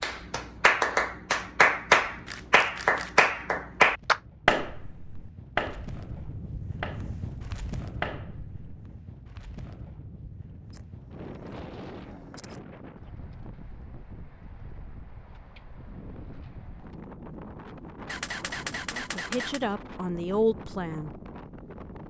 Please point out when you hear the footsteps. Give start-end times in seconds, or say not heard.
not heard.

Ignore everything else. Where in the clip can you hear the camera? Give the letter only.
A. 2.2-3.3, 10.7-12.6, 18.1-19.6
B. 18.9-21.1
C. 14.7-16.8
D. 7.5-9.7
A.